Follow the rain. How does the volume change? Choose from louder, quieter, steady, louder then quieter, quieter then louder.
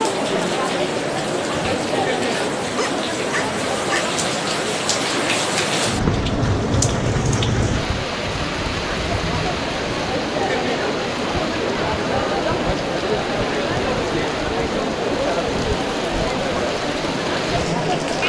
louder then quieter.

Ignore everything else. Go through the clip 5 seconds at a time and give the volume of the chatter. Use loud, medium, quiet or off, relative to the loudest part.
loud, medium, loud, loud.